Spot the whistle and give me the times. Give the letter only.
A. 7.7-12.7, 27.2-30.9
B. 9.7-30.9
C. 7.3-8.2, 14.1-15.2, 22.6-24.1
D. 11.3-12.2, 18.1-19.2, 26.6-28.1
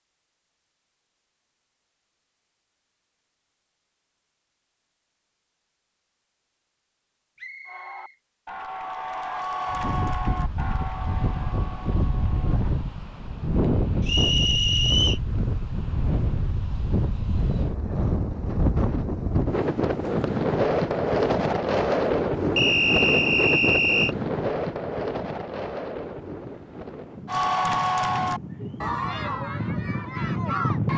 C.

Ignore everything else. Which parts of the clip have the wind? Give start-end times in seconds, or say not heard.
9.7-30.9.